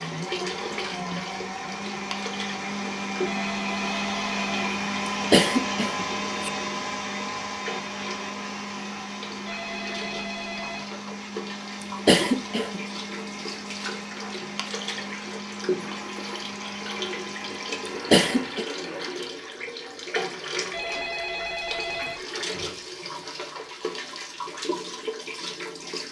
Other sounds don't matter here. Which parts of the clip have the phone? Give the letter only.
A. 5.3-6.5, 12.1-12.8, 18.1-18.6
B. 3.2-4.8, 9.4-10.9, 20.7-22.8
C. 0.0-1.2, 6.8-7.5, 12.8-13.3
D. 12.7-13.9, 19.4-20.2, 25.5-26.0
B.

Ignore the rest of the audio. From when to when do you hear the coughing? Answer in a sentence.
The coughing can be heard from 5.3 to 6.5 s, from 12.1 to 12.8 s and from 18.1 to 18.6 s.